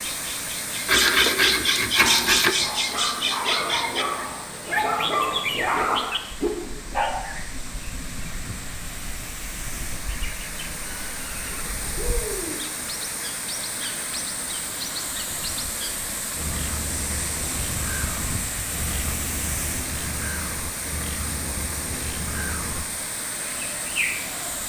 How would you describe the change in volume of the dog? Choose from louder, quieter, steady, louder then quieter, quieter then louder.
louder.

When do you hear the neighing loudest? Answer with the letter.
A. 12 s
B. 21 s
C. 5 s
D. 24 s
A.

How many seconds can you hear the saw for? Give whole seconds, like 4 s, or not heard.
2 s.